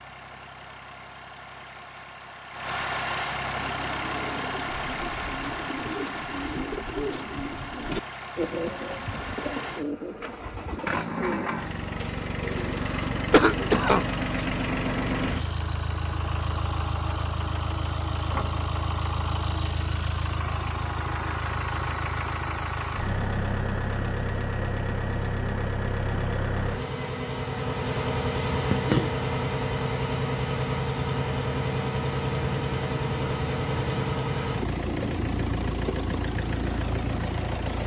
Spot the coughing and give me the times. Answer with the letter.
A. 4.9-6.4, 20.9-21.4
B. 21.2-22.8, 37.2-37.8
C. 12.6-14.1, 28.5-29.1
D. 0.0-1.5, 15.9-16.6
C.